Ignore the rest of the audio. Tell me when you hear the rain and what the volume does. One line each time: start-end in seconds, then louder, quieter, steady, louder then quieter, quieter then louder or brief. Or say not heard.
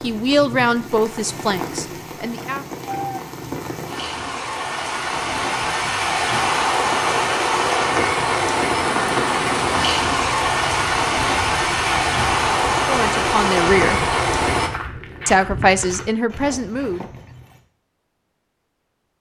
0.0-14.7 louder.